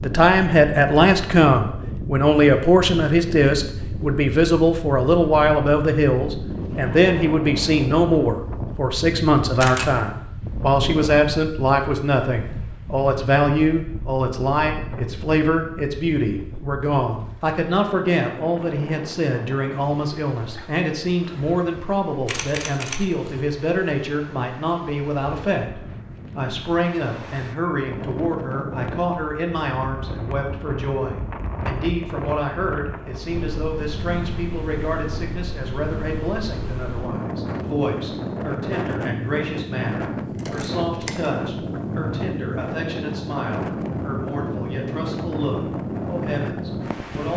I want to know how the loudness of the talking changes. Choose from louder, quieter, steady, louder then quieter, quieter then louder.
quieter.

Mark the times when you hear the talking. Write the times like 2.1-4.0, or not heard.
0.0-47.3.